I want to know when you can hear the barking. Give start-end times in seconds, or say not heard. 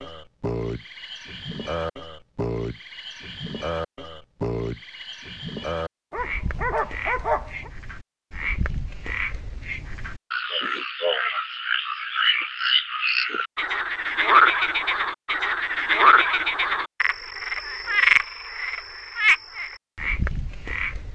6.1-7.7.